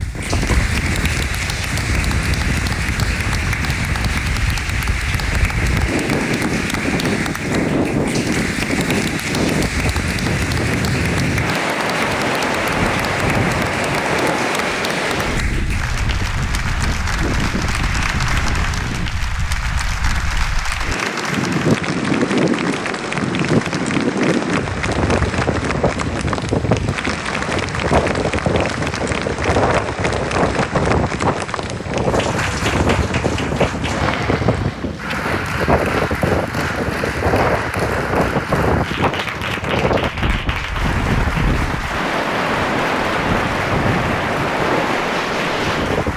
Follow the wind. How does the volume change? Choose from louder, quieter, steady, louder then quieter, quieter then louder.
steady.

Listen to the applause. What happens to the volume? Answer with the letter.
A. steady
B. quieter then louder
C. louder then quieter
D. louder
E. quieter
A.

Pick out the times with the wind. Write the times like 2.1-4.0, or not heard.
0.0-46.1.